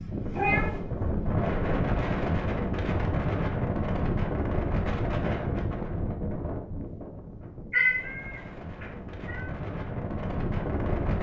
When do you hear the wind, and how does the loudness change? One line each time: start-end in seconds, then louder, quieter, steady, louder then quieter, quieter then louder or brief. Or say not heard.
0.0-11.1 quieter then louder.